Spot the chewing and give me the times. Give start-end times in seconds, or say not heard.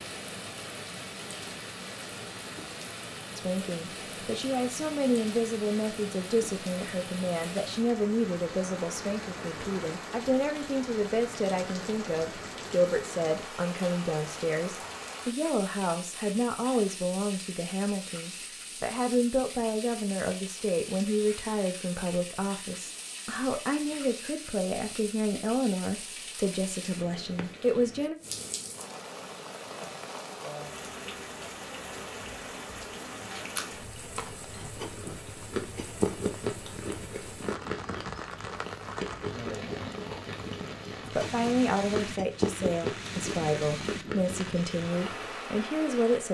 33.4-45.3.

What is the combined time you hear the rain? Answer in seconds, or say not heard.
46 s.